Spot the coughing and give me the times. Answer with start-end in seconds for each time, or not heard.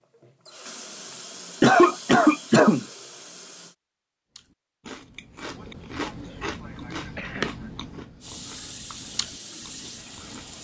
1.6-2.9, 5.5-7.7.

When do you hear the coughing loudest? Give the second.
2 s.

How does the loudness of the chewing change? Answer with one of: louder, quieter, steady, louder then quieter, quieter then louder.
louder then quieter.